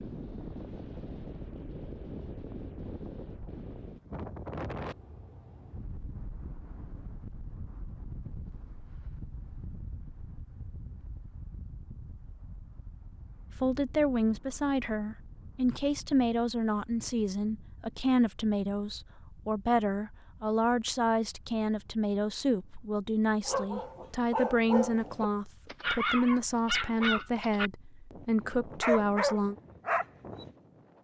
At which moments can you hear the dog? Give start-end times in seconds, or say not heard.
23.4-30.5.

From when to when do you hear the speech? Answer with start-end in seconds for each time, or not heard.
13.6-29.6.